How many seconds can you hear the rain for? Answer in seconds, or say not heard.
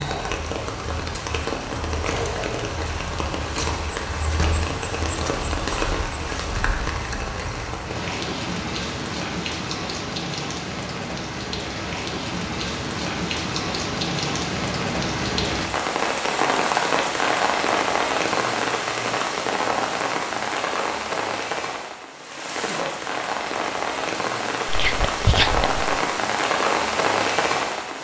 28 s.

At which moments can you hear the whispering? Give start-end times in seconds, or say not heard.
24.6-25.8.